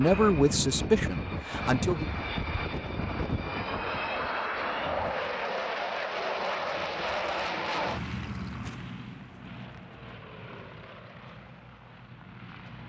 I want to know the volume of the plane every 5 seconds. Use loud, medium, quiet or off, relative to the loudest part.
loud, loud, quiet.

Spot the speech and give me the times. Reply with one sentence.
The speech can be heard from 0.0 to 2.1 s.